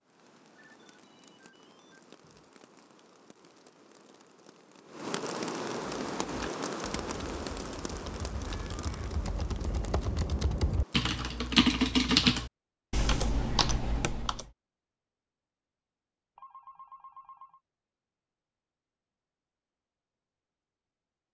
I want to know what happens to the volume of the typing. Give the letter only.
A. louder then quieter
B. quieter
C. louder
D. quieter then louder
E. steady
A.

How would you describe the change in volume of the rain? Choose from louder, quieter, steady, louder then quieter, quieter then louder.
louder then quieter.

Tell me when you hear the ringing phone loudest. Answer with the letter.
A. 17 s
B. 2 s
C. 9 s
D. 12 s
A.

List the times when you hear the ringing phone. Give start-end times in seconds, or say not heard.
0.6-2.5, 8.4-8.8, 16.4-17.6.